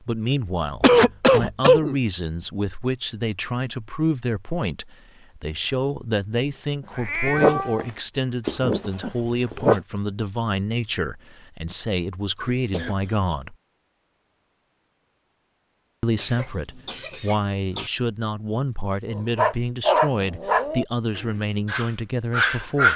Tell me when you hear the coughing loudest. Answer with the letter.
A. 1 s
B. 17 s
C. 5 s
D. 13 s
A.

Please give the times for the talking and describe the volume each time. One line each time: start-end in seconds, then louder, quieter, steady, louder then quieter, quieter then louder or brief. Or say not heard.
0.0-13.6 steady
16.0-22.9 steady.